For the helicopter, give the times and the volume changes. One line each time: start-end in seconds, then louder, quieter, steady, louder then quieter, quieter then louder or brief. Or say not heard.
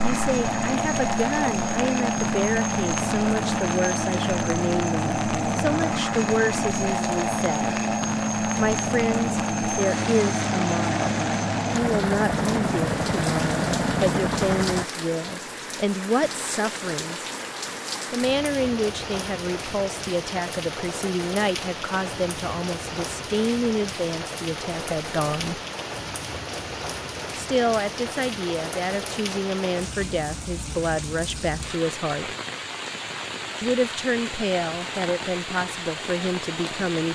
0.0-14.8 steady.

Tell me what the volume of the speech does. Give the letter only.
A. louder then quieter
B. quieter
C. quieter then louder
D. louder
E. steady
E.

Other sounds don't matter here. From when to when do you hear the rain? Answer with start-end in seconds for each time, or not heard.
0.2-37.1.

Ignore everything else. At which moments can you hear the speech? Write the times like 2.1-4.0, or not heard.
0.0-7.8, 8.6-17.3, 18.1-25.6, 27.4-32.4, 33.6-37.1.